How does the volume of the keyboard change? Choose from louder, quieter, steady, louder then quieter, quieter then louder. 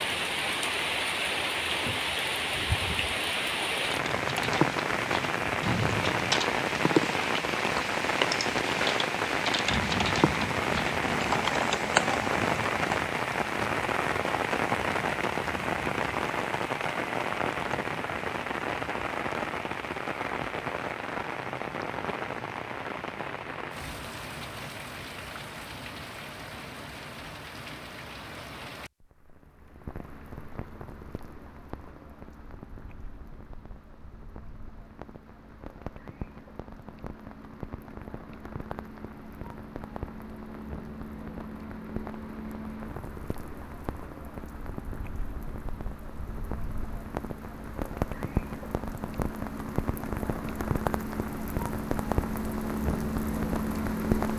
steady.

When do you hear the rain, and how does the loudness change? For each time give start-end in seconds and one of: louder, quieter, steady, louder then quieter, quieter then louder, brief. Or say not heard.
0.0-54.3 quieter then louder.